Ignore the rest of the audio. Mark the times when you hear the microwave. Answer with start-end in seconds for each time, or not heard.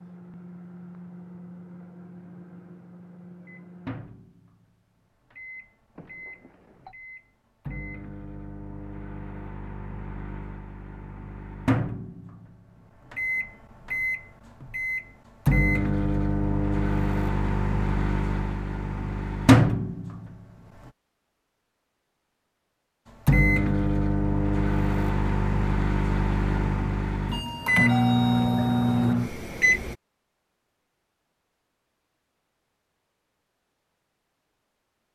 0.0-20.9, 23.2-29.9.